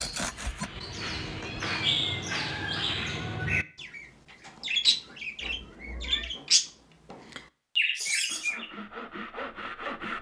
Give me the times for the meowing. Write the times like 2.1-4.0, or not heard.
1.0-3.0, 5.4-6.3.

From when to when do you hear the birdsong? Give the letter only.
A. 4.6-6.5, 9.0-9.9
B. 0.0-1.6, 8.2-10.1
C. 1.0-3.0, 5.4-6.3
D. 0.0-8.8
D.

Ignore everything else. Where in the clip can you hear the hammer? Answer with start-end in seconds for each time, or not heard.
not heard.